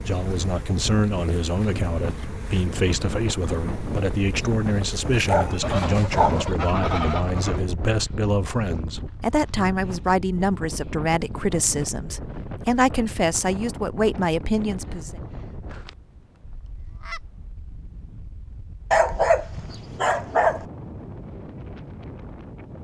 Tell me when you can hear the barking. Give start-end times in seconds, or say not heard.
5.2-6.7, 18.9-20.6.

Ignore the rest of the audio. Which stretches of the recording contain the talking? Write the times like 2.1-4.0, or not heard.
0.0-15.2.